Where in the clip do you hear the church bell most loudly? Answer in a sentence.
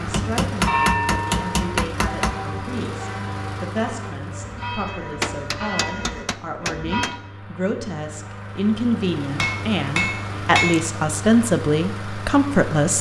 The loudest moment of the church bell is at 1 second.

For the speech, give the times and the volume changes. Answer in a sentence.
You can hear the speech from 0.0 to 12.9 s, getting louder.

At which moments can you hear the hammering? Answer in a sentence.
The hammering can be heard from 0.1 to 2.4 s, from 5.2 to 7.2 s and from 9.3 to 10.8 s.